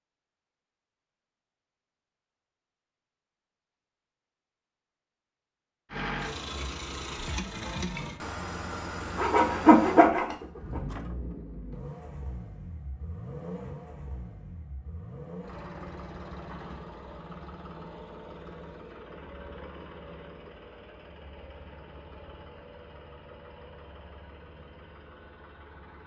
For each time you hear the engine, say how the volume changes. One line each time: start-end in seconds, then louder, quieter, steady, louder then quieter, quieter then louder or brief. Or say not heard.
5.9-26.0 quieter.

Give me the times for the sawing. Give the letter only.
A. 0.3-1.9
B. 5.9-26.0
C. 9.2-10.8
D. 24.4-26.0
C.